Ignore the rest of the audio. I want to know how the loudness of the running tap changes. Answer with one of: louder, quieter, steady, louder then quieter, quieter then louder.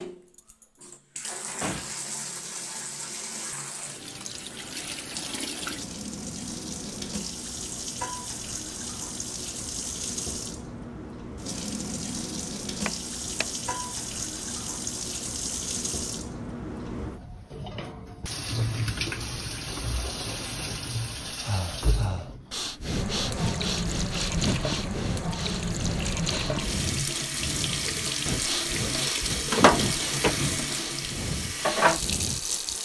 louder.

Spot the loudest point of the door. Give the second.
30 s.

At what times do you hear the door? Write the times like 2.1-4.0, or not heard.
1.1-2.1, 12.8-13.4, 29.5-30.4.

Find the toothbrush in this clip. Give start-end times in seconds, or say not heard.
not heard.